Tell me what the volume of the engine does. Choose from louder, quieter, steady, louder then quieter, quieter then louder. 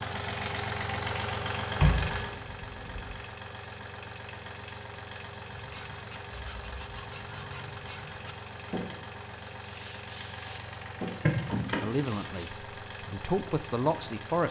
quieter.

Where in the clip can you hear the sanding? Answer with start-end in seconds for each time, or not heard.
5.5-12.5.